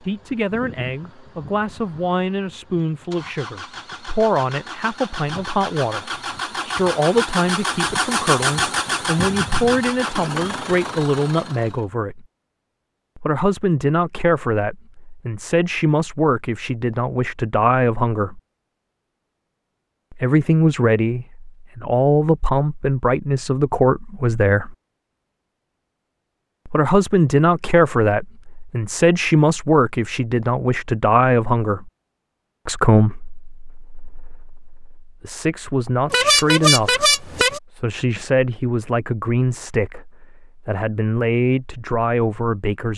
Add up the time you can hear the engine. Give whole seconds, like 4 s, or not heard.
12 s.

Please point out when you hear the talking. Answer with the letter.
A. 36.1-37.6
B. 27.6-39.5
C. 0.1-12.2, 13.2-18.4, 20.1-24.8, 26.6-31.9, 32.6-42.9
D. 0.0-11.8
C.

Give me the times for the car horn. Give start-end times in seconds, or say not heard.
36.1-37.6.